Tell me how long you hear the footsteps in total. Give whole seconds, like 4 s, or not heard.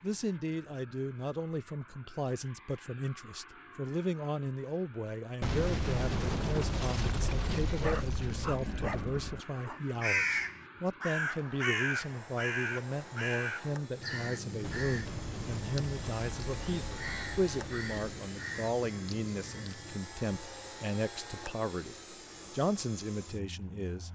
not heard.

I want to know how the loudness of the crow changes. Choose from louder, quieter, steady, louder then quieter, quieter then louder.
quieter.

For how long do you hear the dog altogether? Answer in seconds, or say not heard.
2 s.